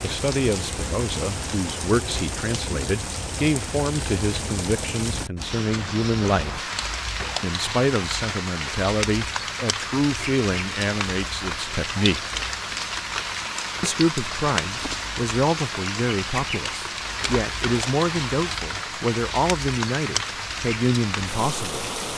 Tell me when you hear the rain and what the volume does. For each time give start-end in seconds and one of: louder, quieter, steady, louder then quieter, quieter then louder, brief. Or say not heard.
0.0-22.1 steady.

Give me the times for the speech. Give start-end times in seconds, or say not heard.
0.0-6.7, 7.4-12.2, 13.8-21.9.